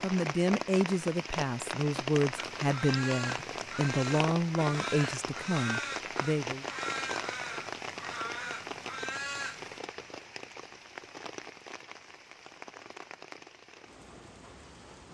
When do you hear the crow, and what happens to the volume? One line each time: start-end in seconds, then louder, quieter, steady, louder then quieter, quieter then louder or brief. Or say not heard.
2.4-9.8 steady.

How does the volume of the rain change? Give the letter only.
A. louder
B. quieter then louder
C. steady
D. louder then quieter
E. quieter
E.